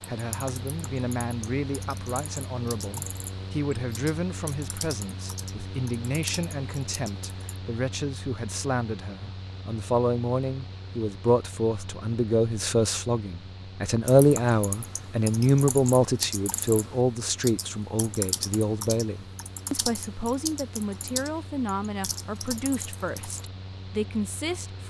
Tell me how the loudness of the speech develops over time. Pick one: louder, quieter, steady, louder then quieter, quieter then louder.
louder then quieter.